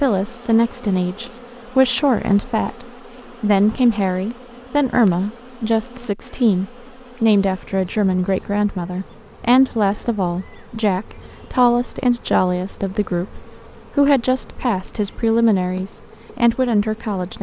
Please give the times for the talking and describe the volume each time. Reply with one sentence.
The talking can be heard from 0.0 to 17.3 s, at a steady volume.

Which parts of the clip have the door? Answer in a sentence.
The door can't be heard in this clip.